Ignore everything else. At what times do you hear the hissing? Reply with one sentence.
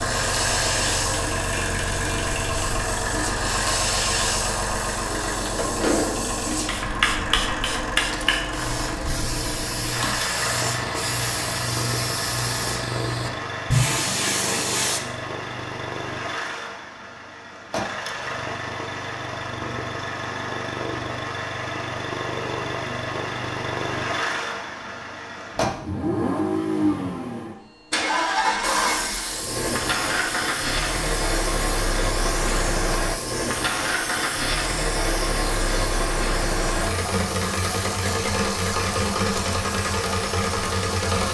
The hissing can be heard from 0.0 to 15.0 s and from 28.6 to 41.2 s.